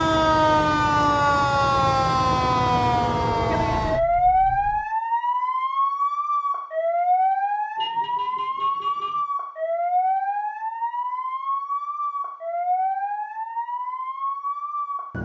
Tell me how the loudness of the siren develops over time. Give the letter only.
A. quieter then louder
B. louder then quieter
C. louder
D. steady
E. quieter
E.